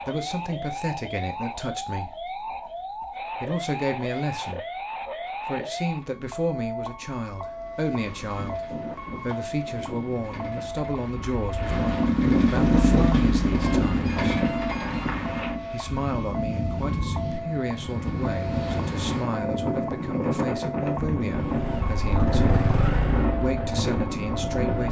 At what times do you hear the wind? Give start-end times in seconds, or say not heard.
8.0-24.8.